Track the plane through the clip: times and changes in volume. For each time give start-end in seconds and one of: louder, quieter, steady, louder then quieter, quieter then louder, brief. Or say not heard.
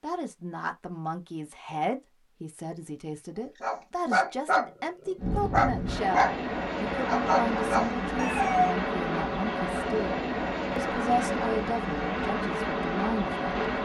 5.2-13.7 steady.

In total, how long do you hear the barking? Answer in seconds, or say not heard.
5 s.